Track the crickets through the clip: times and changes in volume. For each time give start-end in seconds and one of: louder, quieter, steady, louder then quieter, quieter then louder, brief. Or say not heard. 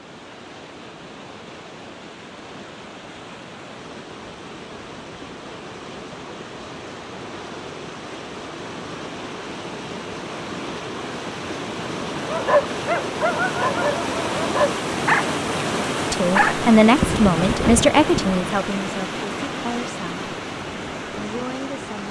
not heard.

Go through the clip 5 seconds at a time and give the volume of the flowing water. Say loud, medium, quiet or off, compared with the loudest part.
quiet, medium, loud, loud, medium.